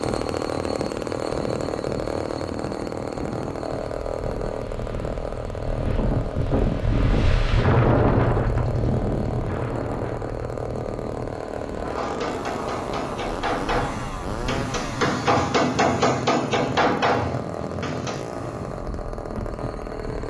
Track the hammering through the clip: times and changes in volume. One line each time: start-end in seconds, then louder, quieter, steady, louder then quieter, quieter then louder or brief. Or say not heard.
11.9-18.2 louder.